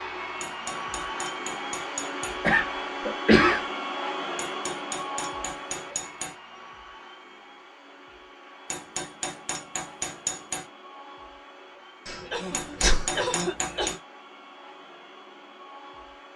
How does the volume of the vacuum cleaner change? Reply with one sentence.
The volume of the vacuum cleaner goes down.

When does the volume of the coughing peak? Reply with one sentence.
The loudest moment of the coughing is at 3 seconds.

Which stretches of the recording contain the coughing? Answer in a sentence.
You can hear the coughing from 2.4 to 3.6 s and from 12.1 to 13.9 s.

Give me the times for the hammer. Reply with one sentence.
The hammer can be heard from 0.4 to 2.4 s, from 4.3 to 6.3 s, from 8.7 to 10.7 s and from 12.5 to 14.0 s.